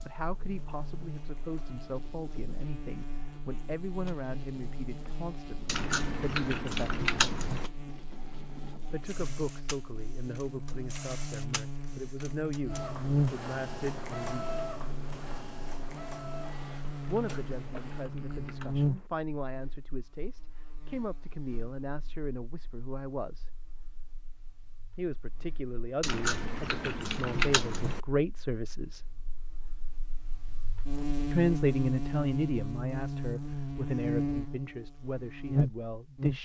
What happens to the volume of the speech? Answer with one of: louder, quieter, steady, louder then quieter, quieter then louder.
louder.